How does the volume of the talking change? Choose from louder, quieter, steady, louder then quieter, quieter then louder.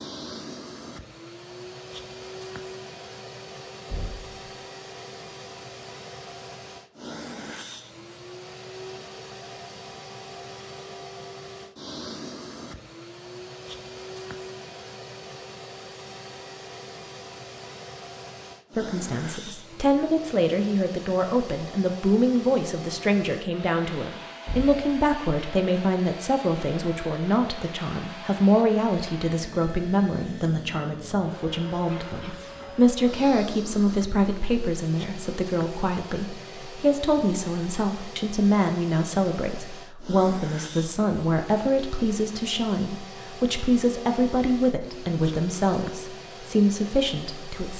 steady.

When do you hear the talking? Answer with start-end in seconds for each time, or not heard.
18.8-47.7.